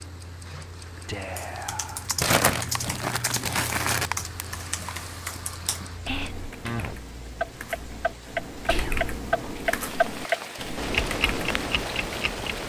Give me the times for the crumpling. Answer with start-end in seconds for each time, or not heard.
2.1-4.1.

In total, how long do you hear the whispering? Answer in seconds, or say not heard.
2 s.